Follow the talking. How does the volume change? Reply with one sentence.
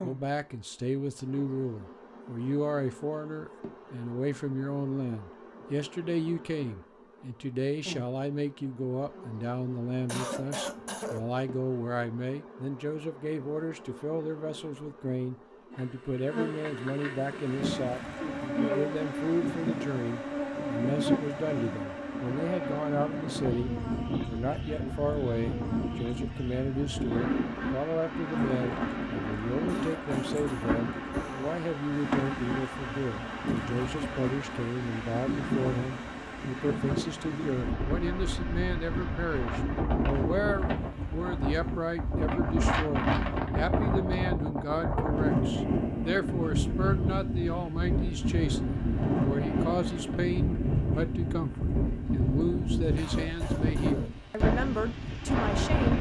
The loudness of the talking stays about the same.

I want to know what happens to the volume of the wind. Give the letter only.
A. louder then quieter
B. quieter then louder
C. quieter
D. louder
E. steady
D.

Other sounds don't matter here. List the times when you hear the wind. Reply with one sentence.
The wind can be heard from 17.1 to 55.9 s.